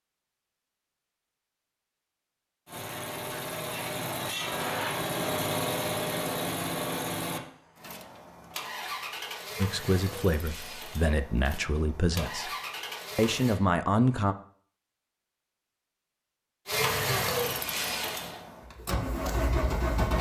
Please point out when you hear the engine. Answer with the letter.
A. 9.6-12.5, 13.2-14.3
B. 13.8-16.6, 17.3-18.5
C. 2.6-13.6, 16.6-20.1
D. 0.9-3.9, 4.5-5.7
C.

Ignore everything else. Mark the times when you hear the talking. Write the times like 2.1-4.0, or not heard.
9.6-12.5, 13.2-14.3.